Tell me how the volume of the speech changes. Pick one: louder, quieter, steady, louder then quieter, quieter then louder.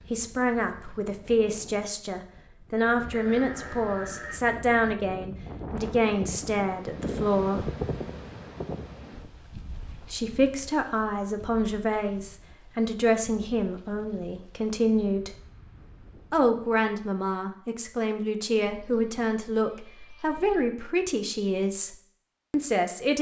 steady.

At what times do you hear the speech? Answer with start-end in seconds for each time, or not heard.
0.0-7.7, 10.0-15.4, 16.3-23.1.